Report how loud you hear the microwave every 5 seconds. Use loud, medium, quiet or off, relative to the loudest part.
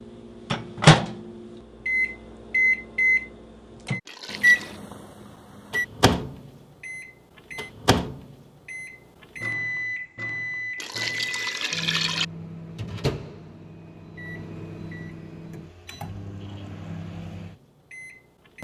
loud, medium, quiet, quiet.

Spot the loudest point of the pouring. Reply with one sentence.
The loudest moment of the pouring is at 12 seconds.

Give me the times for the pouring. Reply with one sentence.
The pouring can be heard from 4.0 to 4.8 s and from 10.8 to 12.2 s.